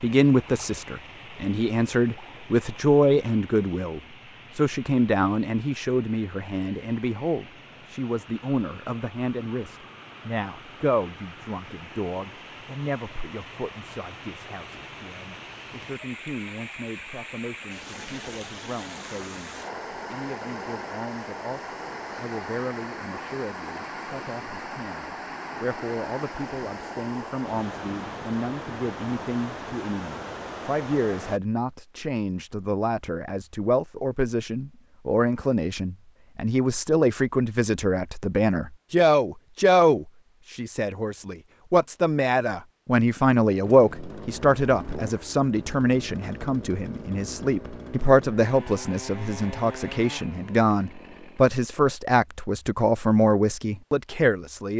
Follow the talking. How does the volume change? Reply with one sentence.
The volume of the talking goes down, then up.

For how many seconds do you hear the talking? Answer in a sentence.
You can hear the talking for 55 seconds altogether.